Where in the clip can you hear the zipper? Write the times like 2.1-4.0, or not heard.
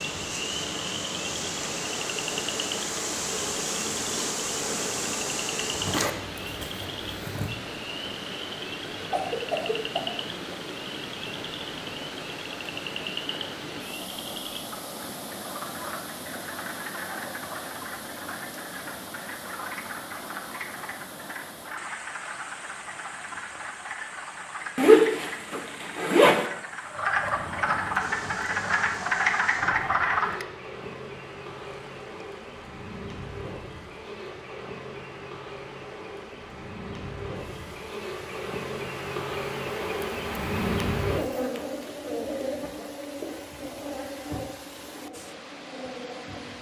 5.7-7.5, 24.8-26.4.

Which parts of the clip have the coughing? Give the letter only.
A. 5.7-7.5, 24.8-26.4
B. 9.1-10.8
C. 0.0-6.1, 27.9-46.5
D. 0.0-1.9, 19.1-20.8
B.